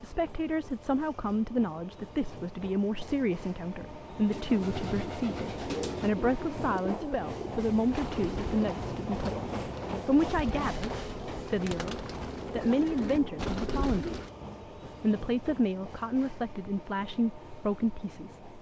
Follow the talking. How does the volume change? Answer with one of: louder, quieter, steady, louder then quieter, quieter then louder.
steady.